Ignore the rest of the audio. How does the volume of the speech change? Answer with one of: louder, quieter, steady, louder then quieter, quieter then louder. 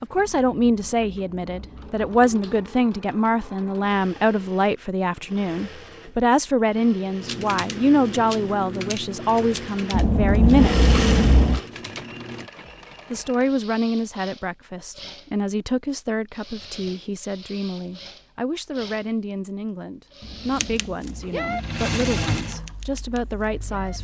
quieter.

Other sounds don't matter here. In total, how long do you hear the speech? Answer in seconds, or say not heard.
22 s.